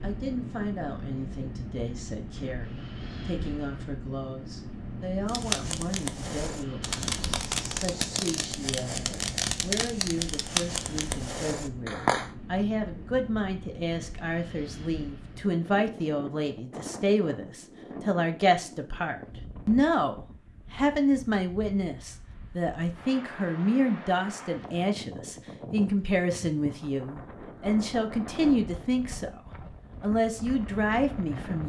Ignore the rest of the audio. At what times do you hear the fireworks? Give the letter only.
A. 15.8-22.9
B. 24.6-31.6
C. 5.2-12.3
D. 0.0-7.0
C.